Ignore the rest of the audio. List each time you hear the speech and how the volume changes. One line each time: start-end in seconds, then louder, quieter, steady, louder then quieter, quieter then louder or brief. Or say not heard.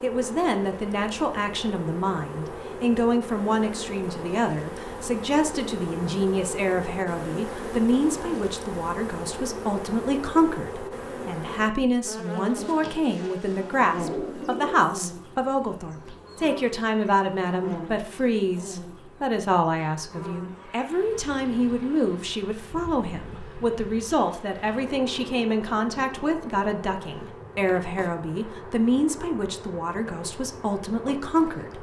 0.0-31.7 steady.